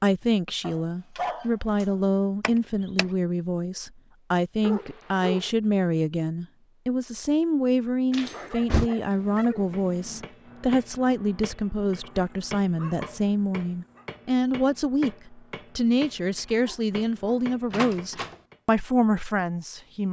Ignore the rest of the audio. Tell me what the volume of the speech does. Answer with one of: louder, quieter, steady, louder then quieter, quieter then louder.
steady.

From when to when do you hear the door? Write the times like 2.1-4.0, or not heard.
2.4-3.0, 8.1-8.9, 17.7-18.4.